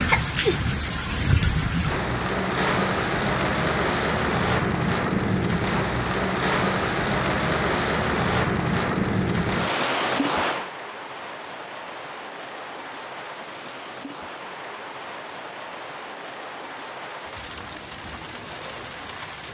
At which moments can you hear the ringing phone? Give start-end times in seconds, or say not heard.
not heard.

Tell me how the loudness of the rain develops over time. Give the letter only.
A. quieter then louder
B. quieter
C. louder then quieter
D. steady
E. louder
B.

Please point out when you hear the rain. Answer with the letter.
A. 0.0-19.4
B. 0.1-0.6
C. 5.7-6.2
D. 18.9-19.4
A.